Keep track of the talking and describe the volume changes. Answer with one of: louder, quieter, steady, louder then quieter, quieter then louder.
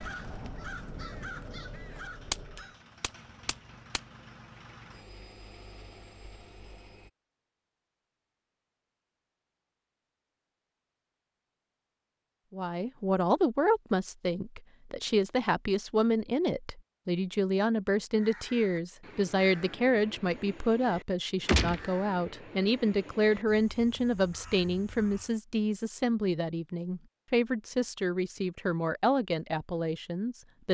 steady.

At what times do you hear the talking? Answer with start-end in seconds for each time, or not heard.
12.5-30.6.